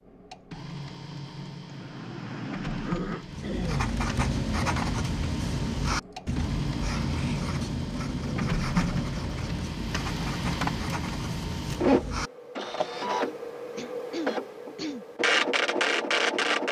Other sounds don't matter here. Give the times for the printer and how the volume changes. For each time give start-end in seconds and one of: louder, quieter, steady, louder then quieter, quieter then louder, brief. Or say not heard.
0.0-16.6 louder.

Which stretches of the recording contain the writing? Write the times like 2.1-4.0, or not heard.
3.2-12.8.